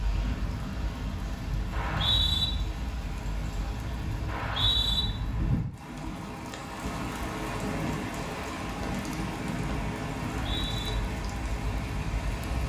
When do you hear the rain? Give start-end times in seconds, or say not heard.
0.0-12.6.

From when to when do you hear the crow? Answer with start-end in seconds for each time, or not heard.
not heard.